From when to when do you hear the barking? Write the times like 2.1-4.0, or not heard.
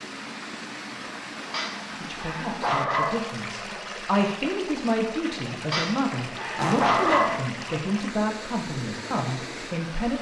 1.5-3.3, 5.7-7.5.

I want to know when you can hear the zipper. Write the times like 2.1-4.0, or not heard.
6.5-7.4.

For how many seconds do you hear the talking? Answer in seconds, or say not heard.
8 s.